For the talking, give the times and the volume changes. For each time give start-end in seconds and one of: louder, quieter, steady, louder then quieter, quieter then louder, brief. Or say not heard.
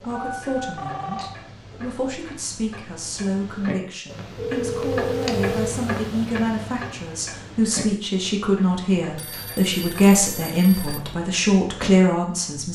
0.0-12.7 louder.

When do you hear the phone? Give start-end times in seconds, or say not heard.
0.1-1.3, 4.3-5.8, 9.2-11.0.